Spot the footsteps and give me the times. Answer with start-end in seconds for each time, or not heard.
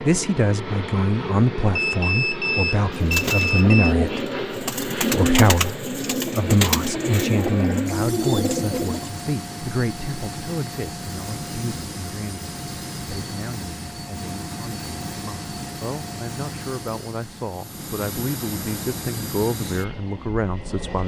not heard.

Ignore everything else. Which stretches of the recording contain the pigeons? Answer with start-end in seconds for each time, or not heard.
2.9-9.1.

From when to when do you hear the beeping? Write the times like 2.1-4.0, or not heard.
1.8-4.0.